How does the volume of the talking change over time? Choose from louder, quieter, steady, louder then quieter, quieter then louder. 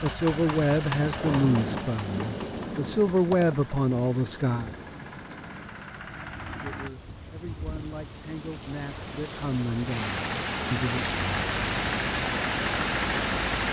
quieter then louder.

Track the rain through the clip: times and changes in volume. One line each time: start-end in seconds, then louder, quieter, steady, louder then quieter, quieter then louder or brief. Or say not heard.
0.0-13.6 quieter then louder.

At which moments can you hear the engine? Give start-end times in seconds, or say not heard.
0.0-6.9, 9.9-13.6.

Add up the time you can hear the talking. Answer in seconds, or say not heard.
9 s.